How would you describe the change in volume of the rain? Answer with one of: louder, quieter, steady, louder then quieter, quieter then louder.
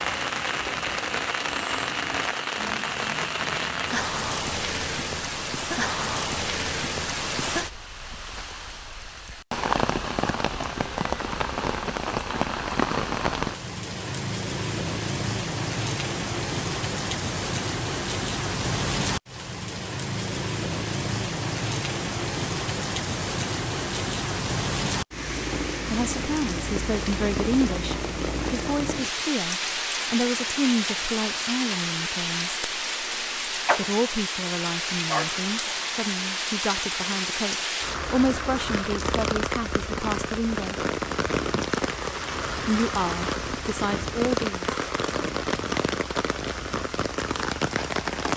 steady.